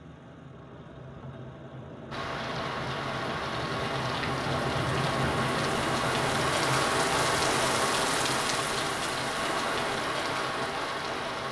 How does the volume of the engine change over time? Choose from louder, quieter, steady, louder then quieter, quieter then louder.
louder then quieter.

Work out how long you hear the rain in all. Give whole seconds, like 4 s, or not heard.
9 s.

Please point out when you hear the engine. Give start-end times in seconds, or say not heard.
0.0-11.4.